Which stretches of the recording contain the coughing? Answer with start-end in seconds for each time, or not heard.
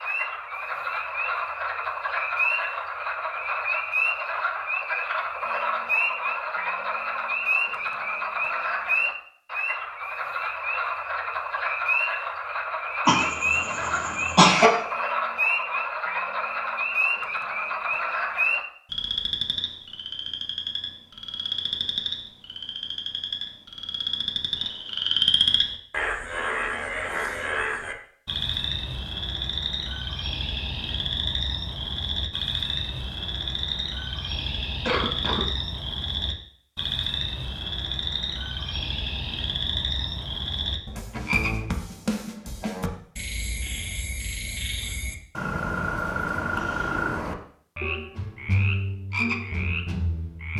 13.1-14.7, 34.9-35.5.